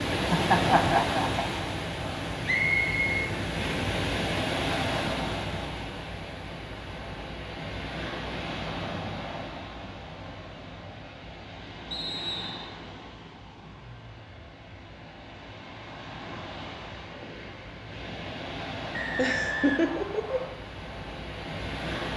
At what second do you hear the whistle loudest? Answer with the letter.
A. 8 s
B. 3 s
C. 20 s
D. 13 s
B.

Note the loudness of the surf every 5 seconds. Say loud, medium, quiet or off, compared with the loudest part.
loud, medium, quiet, medium, medium.